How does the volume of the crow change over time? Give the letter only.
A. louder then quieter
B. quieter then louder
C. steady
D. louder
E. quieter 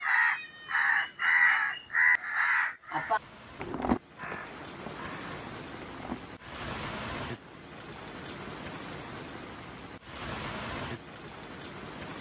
E.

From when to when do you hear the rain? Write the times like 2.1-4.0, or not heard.
0.0-12.1.